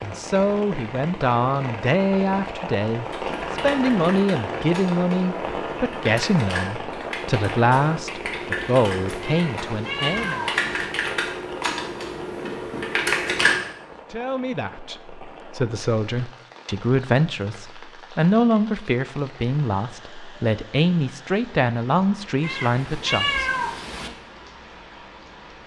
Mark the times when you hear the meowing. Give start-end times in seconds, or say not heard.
9.2-10.9, 22.4-24.1.